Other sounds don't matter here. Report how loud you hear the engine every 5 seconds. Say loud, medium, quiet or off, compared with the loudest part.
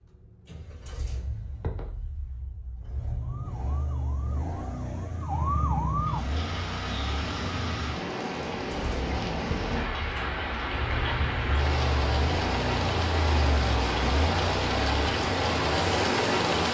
medium, medium, loud, loud.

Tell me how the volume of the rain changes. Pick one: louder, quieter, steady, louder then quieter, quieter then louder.
louder.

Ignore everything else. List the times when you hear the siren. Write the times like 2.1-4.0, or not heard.
3.2-6.2.